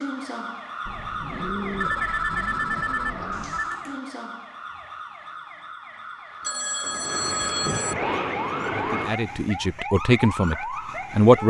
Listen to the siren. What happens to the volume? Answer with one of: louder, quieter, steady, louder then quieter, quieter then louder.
quieter then louder.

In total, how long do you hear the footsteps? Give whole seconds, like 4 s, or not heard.
not heard.